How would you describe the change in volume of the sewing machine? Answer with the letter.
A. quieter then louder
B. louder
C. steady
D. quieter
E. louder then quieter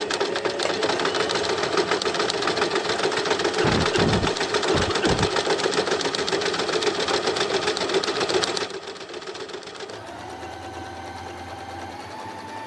D.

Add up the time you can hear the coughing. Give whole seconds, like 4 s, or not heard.
2 s.